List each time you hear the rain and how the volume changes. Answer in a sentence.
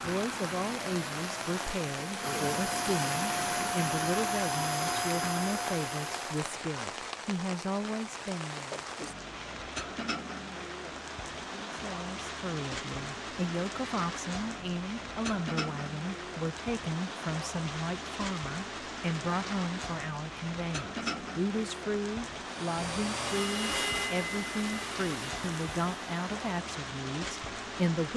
You can hear the rain from 0.0 to 28.1 s, at a steady volume.